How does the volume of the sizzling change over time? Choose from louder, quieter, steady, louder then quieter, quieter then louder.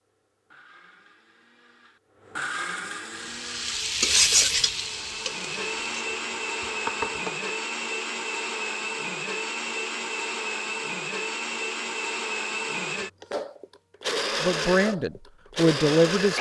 quieter then louder.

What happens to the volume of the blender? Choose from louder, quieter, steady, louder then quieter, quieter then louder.
louder.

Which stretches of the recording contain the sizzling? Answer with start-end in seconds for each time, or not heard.
3.1-7.5.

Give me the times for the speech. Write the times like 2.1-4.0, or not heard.
14.4-16.3.